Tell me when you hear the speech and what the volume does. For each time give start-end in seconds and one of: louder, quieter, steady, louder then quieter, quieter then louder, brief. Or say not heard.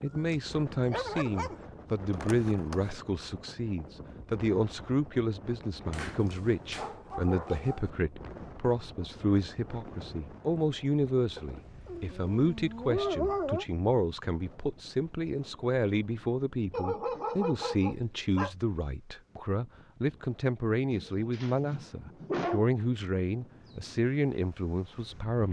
0.0-25.4 steady.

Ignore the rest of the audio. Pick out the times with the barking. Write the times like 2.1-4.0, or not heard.
0.1-1.6, 5.9-7.9, 11.3-13.7, 16.7-18.5, 20.9-22.7.